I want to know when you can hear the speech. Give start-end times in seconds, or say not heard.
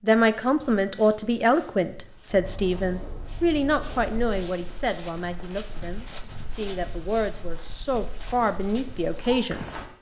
0.0-9.7.